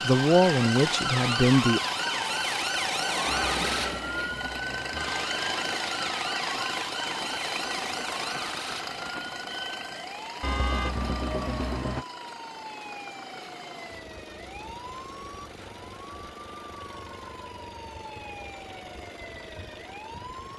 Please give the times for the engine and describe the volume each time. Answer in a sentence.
You can hear the engine from 0.0 to 20.5 s, getting quieter.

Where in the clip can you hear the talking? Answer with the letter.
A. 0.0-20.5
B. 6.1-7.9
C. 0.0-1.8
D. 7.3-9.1
C.